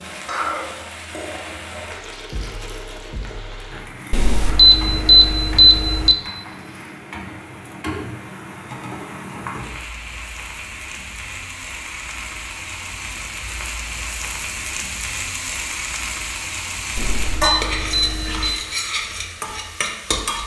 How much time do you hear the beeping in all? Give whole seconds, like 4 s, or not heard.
4 s.